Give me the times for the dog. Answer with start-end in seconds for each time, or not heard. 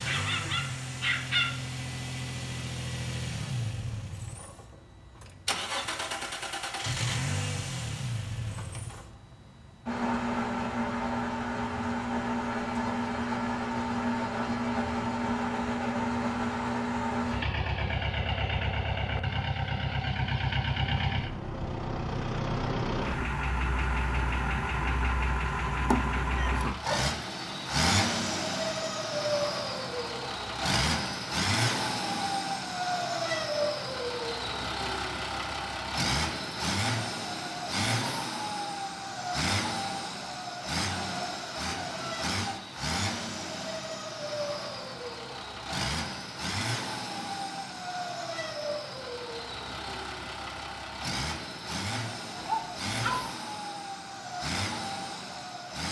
0.1-1.6, 26.4-27.6, 52.4-53.3.